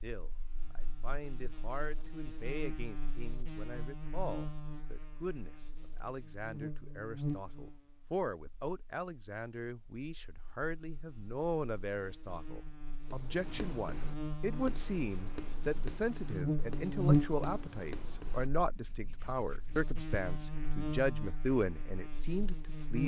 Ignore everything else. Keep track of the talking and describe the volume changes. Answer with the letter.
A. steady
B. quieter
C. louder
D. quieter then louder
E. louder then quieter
C.